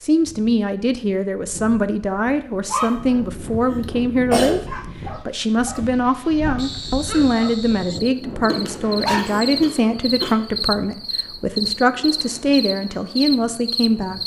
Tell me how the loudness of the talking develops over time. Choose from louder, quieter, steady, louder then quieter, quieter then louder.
steady.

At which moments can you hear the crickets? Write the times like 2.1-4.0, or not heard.
6.5-14.2.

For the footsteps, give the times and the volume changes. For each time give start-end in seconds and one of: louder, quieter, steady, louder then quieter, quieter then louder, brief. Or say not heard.
not heard.